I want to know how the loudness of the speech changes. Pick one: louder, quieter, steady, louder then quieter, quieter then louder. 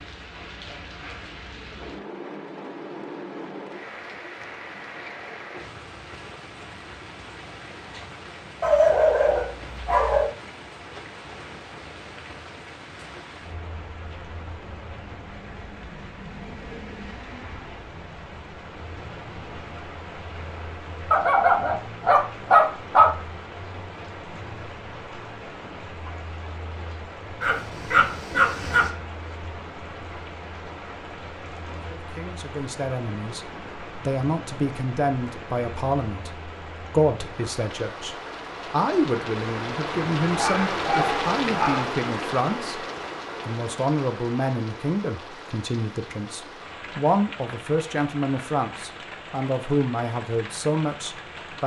steady.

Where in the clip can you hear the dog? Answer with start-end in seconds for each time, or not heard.
8.6-10.3, 21.1-23.1, 27.4-28.9, 40.4-41.9.